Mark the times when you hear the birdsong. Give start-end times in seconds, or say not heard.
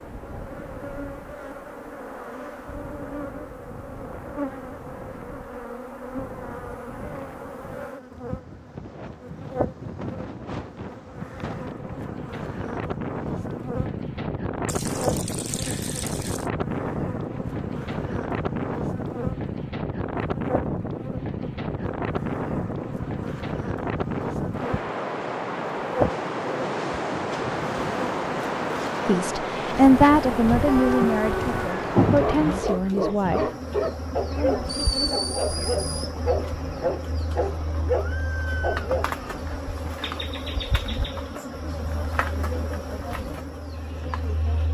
not heard.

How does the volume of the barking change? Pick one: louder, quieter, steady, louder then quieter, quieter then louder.
steady.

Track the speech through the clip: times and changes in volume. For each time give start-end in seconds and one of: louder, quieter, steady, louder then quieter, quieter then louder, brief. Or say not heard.
29.1-33.5 quieter.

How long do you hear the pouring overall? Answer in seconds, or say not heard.
2 s.